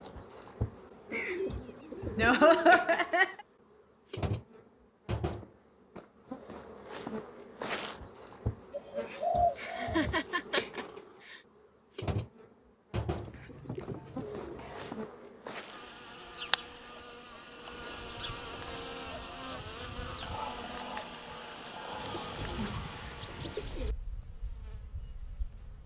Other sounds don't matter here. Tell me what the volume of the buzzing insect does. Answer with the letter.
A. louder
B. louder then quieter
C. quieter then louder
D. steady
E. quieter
D.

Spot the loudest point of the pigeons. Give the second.
9 s.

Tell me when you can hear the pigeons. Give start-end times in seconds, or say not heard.
1.1-2.8, 8.7-10.1, 13.2-14.9, 21.9-23.9.